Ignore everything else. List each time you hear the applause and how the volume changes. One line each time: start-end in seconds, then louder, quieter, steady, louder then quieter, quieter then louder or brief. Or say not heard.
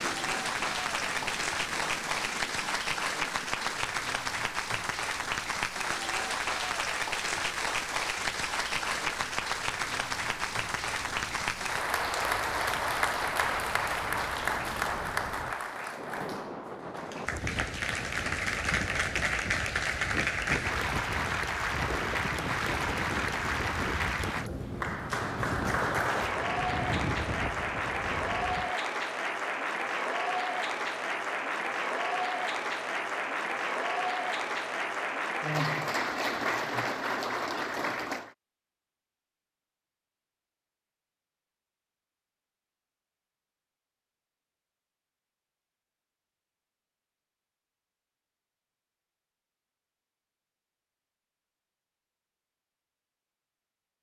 0.0-38.4 steady.